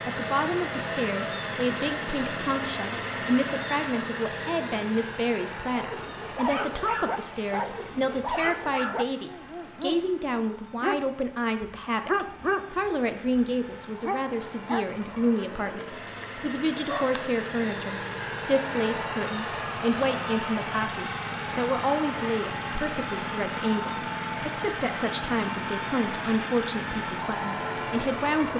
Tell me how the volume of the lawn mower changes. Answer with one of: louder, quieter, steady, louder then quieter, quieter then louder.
quieter then louder.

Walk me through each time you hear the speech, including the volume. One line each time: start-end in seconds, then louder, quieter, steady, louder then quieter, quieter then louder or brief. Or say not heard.
0.1-28.5 steady.